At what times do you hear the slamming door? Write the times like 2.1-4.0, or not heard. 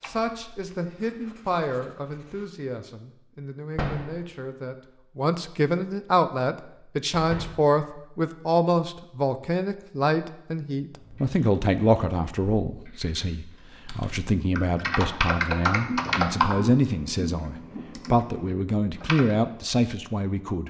3.8-4.2, 7.1-7.7, 15.8-16.3.